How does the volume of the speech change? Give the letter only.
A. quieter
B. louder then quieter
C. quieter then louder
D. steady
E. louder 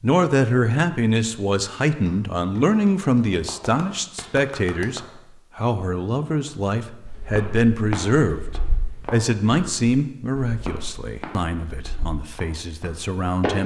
A.